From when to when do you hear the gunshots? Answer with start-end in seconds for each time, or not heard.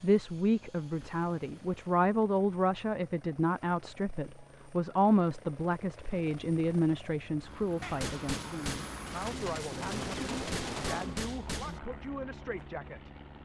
7.8-11.8.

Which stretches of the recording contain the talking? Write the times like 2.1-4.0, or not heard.
0.0-13.1.